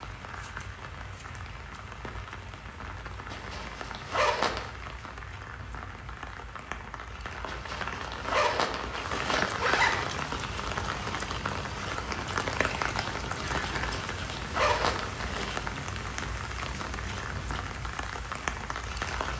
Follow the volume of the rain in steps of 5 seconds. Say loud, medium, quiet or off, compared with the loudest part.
medium, loud, loud, loud.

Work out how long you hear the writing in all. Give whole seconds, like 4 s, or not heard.
8 s.